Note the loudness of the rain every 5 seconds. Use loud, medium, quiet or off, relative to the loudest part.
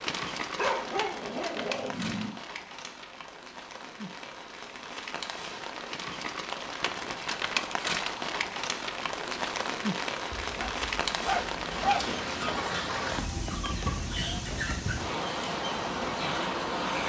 medium, loud, loud, loud.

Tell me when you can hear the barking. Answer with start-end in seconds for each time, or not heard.
0.6-2.4, 10.3-12.1.